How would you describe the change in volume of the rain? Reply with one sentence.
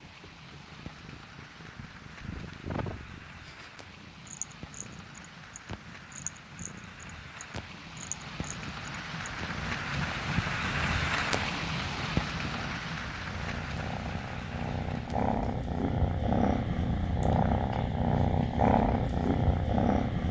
The loudness of the rain goes up, then down.